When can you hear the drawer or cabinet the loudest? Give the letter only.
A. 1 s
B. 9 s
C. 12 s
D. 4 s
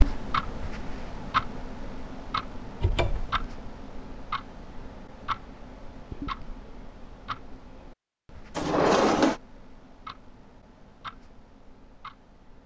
B.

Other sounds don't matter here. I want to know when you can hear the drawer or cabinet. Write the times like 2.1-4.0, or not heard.
2.8-3.5, 8.6-9.4.